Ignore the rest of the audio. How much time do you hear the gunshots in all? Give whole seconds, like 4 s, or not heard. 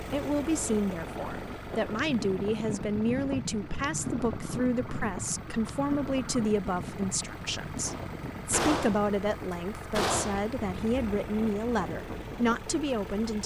3 s.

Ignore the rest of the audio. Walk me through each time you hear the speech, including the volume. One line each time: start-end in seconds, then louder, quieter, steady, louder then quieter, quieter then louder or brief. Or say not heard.
0.0-13.4 steady.